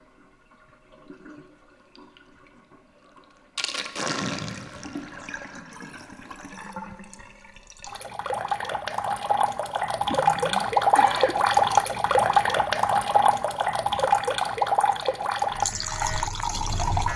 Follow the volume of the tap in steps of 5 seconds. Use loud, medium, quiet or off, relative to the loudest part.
quiet, medium, loud, medium.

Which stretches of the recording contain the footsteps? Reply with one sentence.
You can't hear the footsteps here.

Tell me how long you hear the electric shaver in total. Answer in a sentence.
You can hear the electric shaver for 2 seconds altogether.